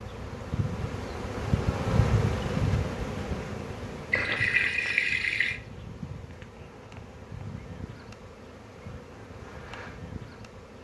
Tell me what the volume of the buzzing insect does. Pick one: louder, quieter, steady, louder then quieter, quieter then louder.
quieter.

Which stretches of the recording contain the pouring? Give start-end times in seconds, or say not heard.
4.1-5.6.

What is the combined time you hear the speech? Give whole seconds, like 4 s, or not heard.
not heard.